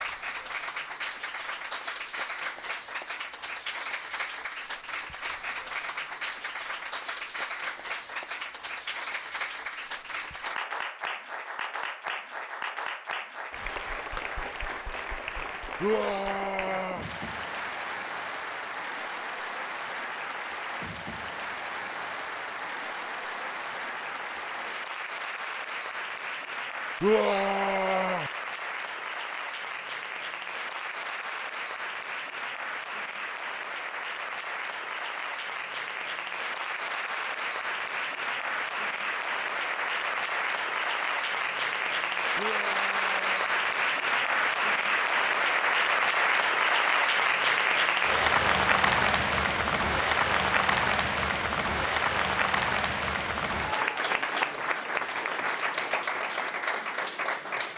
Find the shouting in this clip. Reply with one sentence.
You can hear the shouting from 15.8 to 17.1 s, from 27.0 to 28.3 s and from 42.4 to 43.5 s.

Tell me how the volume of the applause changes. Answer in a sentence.
The loudness of the applause goes up.